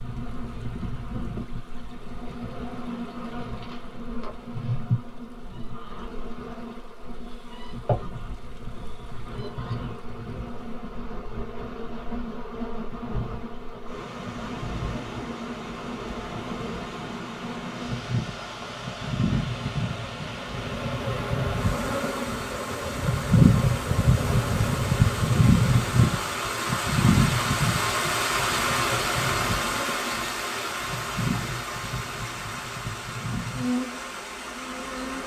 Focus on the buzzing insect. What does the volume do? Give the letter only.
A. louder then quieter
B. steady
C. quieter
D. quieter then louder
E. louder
A.